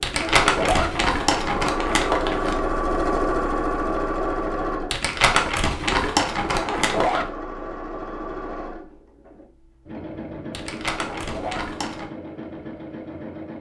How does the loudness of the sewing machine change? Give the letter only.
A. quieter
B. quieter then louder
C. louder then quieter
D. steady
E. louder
A.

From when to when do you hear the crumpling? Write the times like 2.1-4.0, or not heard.
0.0-2.5, 4.9-7.2, 10.5-12.1.